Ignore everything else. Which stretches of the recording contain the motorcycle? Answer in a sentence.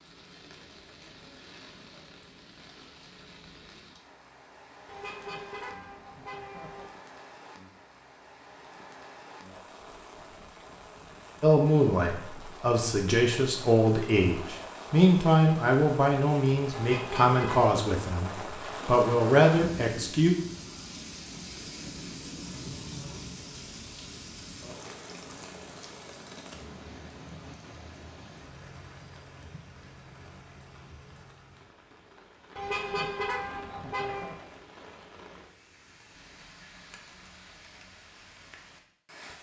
The motorcycle can't be heard in this clip.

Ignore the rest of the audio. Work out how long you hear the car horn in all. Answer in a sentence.
The car horn can be heard for 5 seconds in total.